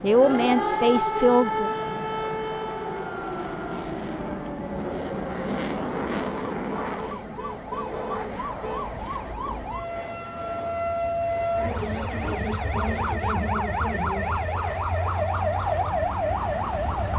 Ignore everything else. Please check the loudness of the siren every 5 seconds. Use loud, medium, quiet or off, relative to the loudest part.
loud, medium, loud, loud.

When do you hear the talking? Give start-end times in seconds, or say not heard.
0.0-1.7.